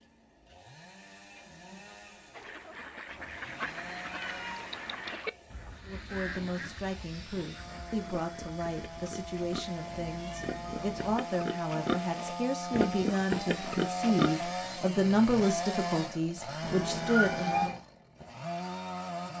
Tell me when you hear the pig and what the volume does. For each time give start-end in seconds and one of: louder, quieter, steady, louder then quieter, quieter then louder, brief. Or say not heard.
6.2-14.6 louder.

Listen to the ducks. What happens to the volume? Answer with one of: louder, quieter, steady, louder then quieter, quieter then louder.
quieter.